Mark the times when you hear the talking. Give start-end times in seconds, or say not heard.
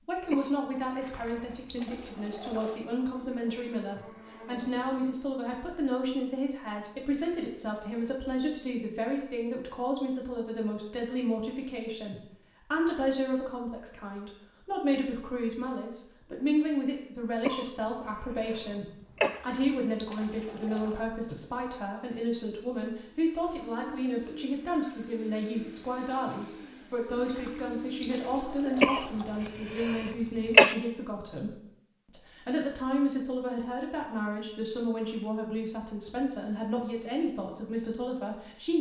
0.1-38.7.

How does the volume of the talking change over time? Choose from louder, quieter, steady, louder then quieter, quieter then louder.
steady.